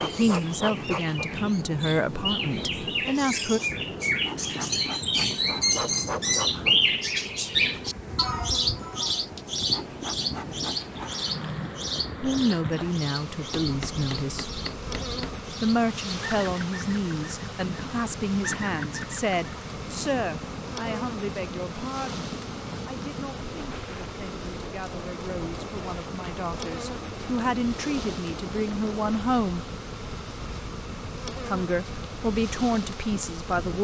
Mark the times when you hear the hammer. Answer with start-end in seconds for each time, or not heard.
13.3-15.3.